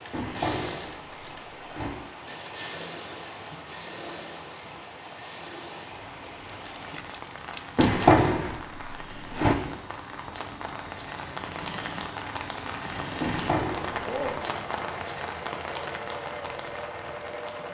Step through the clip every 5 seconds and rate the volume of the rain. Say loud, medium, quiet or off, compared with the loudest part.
medium, medium, loud, loud.